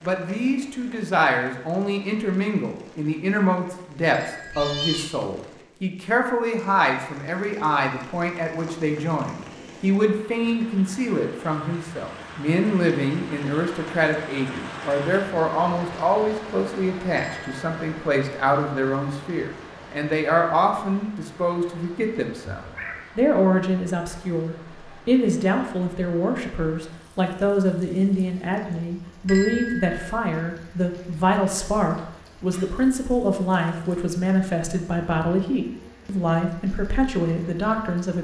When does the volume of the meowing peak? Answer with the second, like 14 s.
5 s.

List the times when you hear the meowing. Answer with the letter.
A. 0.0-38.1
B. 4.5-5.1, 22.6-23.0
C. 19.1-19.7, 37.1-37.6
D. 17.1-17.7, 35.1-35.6
B.